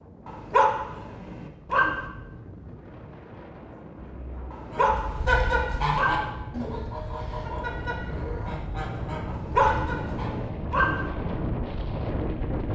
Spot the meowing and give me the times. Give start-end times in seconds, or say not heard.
not heard.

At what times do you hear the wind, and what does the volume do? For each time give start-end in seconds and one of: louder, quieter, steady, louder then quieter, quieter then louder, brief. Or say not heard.
0.0-12.7 louder.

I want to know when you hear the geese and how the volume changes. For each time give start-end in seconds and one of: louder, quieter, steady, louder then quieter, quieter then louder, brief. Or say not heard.
4.7-10.3 quieter.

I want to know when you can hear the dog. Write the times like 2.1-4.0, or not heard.
0.2-2.0, 4.5-6.3, 9.2-11.1.